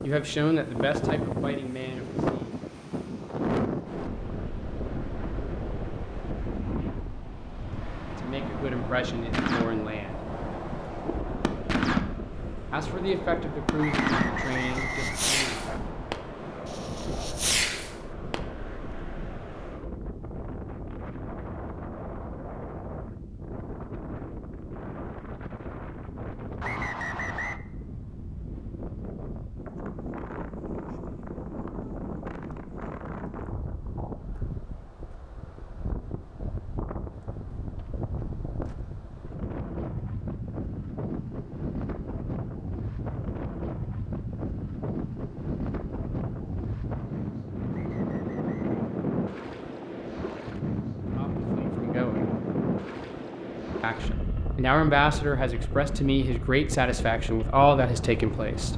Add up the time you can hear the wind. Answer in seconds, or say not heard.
59 s.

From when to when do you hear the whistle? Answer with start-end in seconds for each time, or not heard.
13.8-15.8, 26.6-27.6, 47.7-48.8.